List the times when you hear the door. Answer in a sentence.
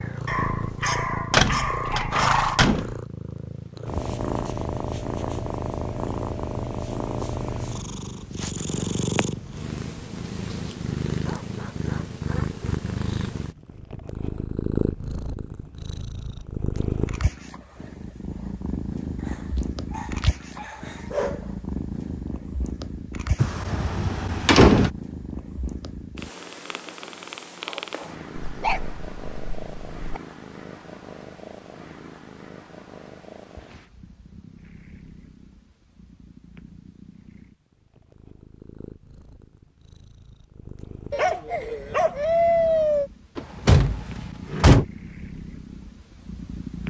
The door can be heard from 1.3 to 3.0 s, from 23.4 to 24.9 s and from 43.4 to 44.9 s.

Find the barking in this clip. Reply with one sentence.
You can hear the barking from 0.2 to 2.5 s, from 11.2 to 12.6 s, from 19.2 to 21.5 s, from 28.4 to 30.2 s and from 41.1 to 43.1 s.